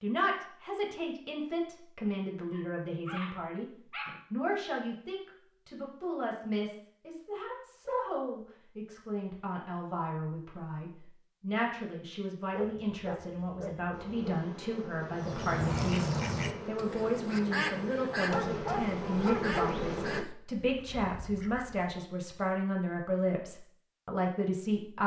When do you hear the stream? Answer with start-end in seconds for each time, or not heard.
not heard.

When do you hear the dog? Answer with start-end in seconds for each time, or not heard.
2.5-4.2, 12.5-14.5, 18.2-19.9.